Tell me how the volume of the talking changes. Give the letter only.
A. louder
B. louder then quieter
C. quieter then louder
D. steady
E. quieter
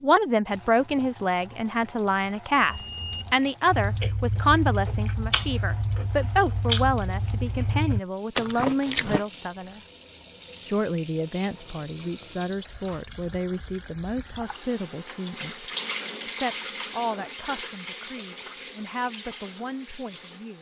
E.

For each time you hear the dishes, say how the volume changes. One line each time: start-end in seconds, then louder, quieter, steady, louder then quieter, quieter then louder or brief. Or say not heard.
not heard.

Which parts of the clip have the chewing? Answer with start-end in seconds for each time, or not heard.
3.6-9.2.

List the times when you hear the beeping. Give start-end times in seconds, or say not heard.
2.6-3.4.